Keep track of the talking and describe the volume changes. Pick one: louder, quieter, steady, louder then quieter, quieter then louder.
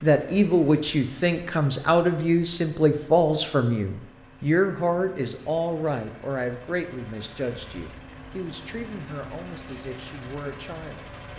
quieter.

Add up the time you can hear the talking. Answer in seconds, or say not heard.
11 s.